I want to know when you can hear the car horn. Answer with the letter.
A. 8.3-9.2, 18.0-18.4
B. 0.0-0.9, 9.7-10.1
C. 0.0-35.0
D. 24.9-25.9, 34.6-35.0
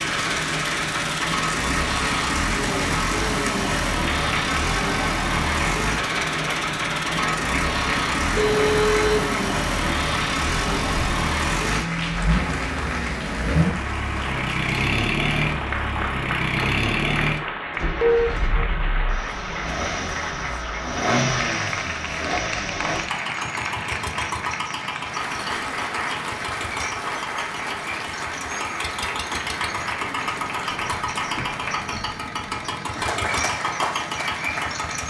A.